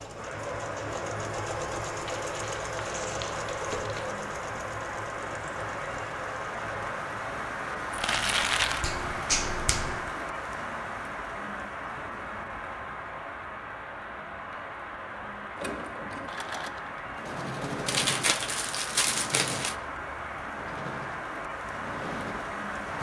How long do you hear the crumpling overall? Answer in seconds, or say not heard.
5 s.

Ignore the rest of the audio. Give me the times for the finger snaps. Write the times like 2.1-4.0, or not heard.
8.8-10.1.